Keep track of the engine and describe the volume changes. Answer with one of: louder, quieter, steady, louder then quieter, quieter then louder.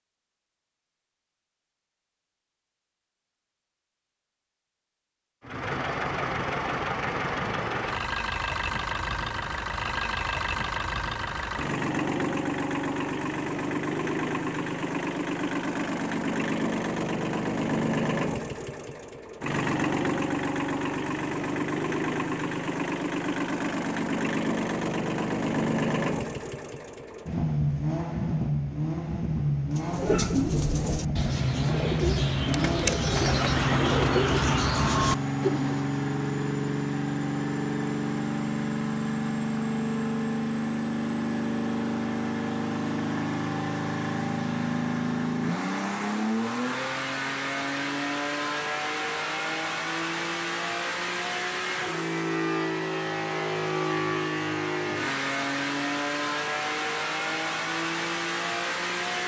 steady.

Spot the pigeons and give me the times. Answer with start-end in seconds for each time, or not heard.
29.8-35.9.